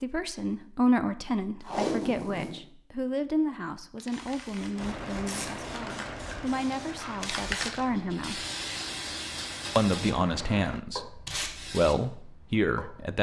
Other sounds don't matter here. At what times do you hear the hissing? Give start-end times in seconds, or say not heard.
4.0-13.1.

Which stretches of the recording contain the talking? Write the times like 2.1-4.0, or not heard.
0.0-8.4, 9.8-13.1.